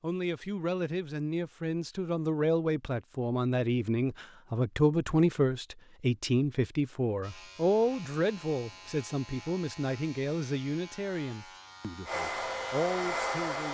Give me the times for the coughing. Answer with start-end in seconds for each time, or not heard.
not heard.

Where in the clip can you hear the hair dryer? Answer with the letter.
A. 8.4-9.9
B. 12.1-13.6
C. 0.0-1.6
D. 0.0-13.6
B.